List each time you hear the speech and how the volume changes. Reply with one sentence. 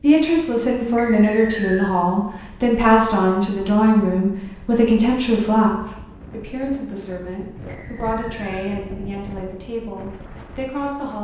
You can hear the speech from 0.0 to 11.1 s, getting quieter.